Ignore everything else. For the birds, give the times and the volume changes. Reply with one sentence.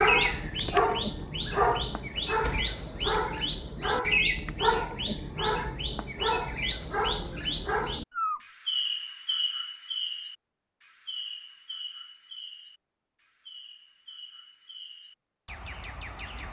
You can hear the birds from 0.0 to 16.4 s, getting quieter.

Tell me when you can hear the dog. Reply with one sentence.
You can hear the dog from 0.0 to 8.4 s.